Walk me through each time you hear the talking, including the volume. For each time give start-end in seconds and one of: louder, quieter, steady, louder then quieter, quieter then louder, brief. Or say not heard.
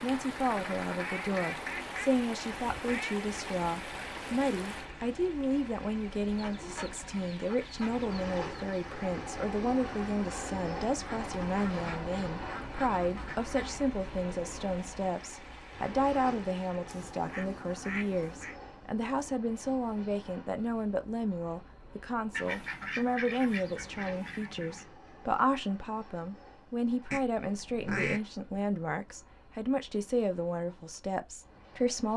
0.0-32.1 steady.